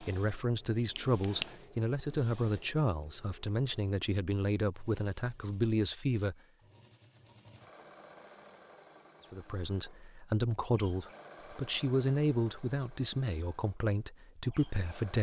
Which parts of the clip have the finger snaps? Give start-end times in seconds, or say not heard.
0.8-1.5.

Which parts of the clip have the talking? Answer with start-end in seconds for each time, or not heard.
0.0-6.3, 9.3-15.1.